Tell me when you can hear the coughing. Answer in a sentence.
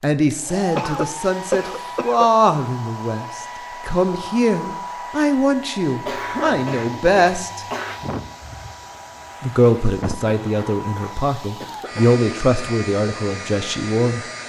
You can hear the coughing from 0.8 to 2.3 s, from 6.0 to 8.0 s and from 10.2 to 12.2 s.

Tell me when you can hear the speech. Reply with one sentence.
The speech can be heard from 0.0 to 7.7 s and from 9.4 to 14.2 s.